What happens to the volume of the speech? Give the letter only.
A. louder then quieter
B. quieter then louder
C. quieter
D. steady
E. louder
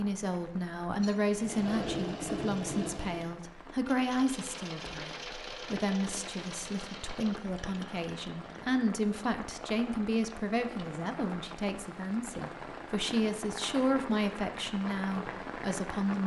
D.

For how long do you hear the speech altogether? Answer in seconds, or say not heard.
16 s.